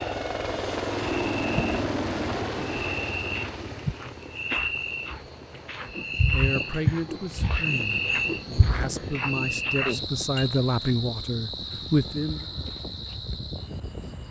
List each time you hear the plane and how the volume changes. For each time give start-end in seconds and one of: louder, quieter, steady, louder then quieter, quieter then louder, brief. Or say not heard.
0.0-14.2 quieter.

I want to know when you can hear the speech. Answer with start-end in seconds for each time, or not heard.
5.8-12.4.